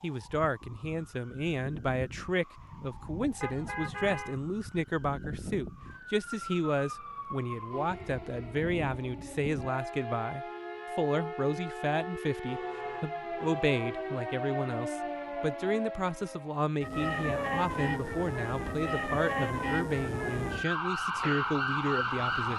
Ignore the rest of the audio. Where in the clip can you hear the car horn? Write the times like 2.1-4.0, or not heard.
3.4-4.4, 12.4-14.2.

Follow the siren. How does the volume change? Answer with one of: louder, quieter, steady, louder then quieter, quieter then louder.
louder.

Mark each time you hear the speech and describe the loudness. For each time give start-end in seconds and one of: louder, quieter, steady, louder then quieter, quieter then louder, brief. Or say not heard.
0.0-22.5 steady.